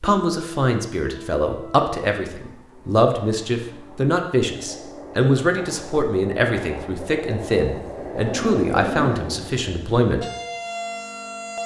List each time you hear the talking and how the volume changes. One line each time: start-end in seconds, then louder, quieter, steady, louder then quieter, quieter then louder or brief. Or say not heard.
0.0-10.2 steady.